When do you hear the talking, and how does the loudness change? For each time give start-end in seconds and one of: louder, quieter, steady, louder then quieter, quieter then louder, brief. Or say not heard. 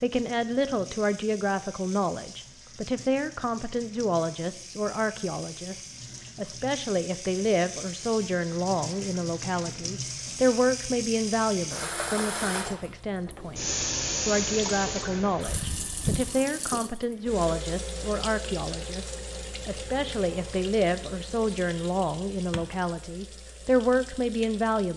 0.0-24.9 steady.